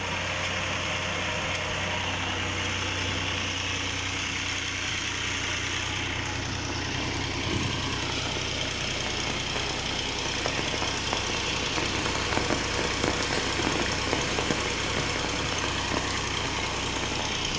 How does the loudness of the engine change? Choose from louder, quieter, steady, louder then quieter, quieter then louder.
steady.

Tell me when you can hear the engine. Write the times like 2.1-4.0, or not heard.
0.0-17.5.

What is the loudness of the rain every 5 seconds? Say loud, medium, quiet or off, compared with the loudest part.
off, medium, loud, loud.